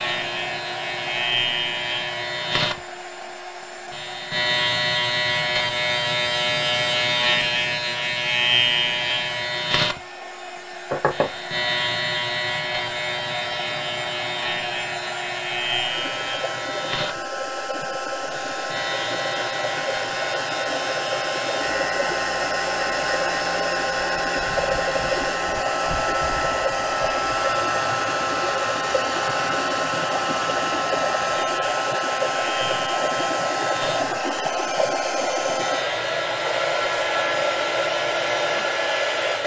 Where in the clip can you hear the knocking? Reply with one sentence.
You can hear the knocking from 10.9 to 11.3 s.